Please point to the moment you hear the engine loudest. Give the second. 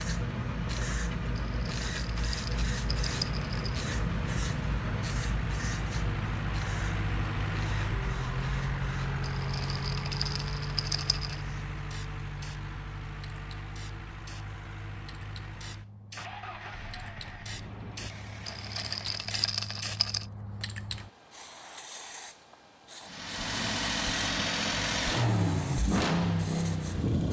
26 s.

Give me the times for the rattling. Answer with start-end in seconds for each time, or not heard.
1.4-3.8, 9.2-11.3, 18.4-20.2.